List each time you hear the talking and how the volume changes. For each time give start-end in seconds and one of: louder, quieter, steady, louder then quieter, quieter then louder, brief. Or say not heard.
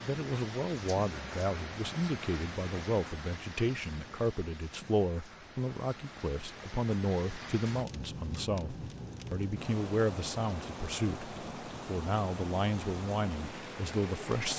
0.0-14.5 steady.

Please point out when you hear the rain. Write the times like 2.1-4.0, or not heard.
0.0-14.5.